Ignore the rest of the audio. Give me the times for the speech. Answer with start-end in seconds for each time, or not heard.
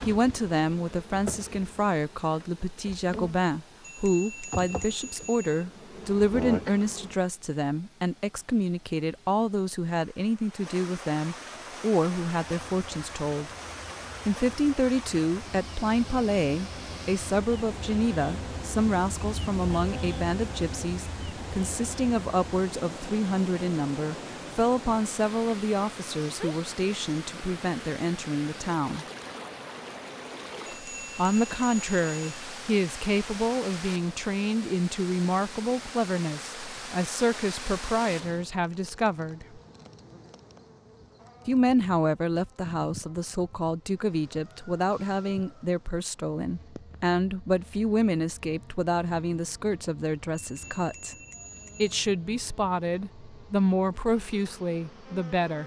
0.0-13.5, 14.2-29.1, 31.1-39.6, 41.5-51.1, 51.8-55.6.